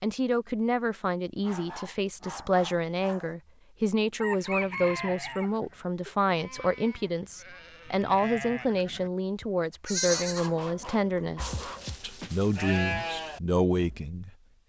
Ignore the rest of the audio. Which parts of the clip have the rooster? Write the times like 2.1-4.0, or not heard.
4.2-5.5.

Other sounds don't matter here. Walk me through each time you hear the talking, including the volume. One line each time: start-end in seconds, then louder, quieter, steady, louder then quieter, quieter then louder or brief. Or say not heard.
0.0-14.6 steady.